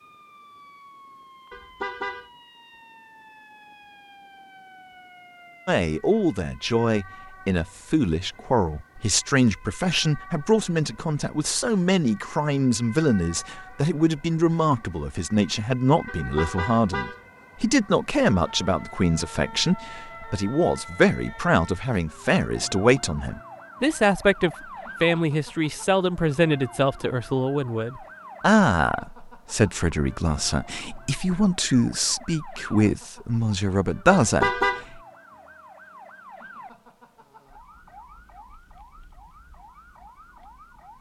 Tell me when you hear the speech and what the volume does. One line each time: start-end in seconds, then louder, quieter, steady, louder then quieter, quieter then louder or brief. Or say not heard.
5.7-35.0 steady.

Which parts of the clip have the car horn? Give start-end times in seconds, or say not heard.
1.5-2.3, 16.1-17.2, 34.2-34.9.